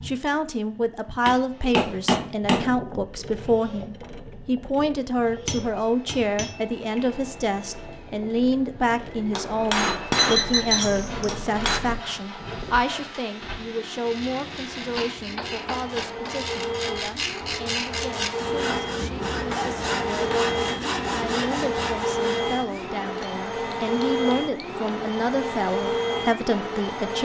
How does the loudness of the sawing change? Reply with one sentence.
The volume of the sawing goes up.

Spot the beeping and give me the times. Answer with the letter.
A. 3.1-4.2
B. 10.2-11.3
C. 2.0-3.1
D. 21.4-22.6
B.